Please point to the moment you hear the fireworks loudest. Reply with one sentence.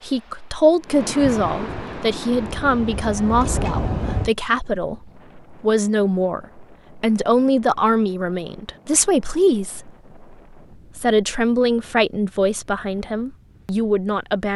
The loudest moment of the fireworks is at 4 seconds.